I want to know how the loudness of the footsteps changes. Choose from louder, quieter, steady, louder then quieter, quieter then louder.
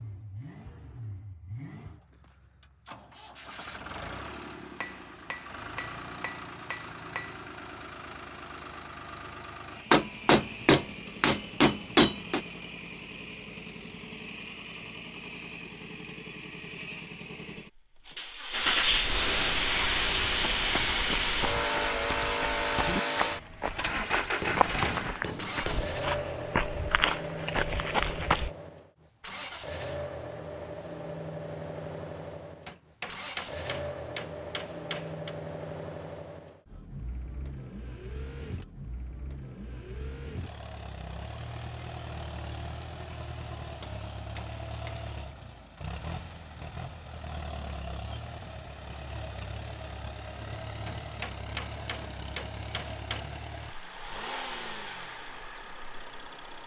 louder.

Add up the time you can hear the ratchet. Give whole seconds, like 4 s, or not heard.
not heard.